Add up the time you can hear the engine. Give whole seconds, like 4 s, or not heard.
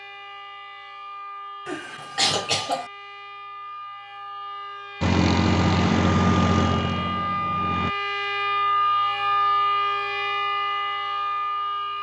3 s.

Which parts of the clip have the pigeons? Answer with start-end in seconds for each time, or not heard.
not heard.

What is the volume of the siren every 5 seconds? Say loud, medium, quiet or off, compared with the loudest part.
quiet, loud, loud.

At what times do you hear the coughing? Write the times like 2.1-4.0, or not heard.
1.6-2.9.